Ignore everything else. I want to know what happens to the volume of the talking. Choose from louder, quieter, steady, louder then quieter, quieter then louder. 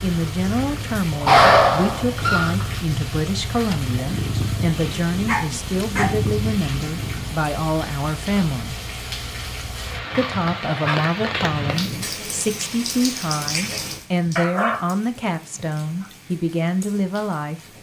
steady.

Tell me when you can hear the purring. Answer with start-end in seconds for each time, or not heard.
0.0-7.3.